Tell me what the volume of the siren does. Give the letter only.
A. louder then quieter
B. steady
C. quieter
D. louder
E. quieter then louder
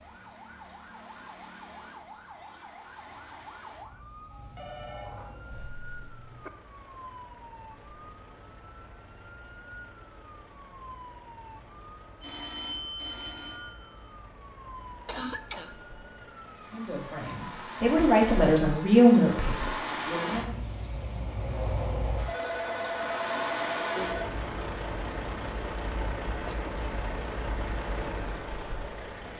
B.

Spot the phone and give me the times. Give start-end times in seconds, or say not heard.
4.3-5.5, 12.2-14.1, 22.2-24.2.